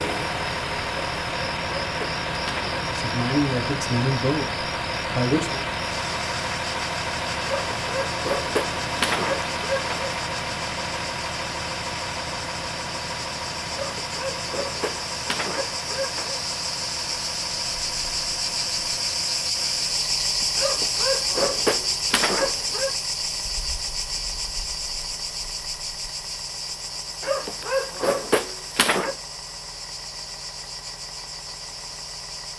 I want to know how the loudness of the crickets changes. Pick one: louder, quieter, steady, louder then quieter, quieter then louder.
louder then quieter.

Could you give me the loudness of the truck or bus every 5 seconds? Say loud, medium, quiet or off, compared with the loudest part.
loud, loud, loud, medium, quiet, quiet, quiet.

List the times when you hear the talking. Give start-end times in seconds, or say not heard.
2.9-5.7.